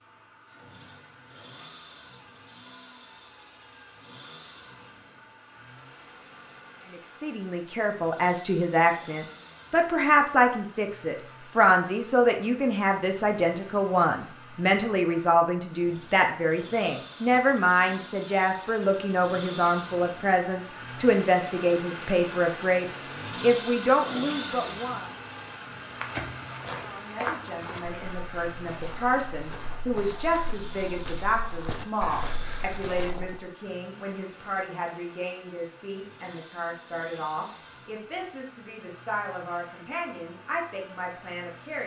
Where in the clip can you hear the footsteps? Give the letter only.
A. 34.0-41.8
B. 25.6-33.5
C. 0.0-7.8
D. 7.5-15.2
B.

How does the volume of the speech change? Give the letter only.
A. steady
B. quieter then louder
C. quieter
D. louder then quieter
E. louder
C.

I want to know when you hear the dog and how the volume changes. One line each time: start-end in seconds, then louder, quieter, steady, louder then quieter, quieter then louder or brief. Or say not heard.
not heard.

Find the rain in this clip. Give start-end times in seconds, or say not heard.
not heard.